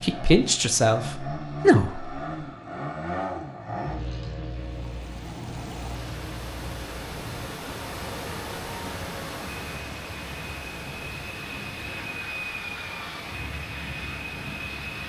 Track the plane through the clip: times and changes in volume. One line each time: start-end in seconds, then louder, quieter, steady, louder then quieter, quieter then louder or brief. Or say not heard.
0.0-15.0 quieter then louder.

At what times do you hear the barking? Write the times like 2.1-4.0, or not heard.
not heard.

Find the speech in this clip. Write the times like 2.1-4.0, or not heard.
0.0-2.1.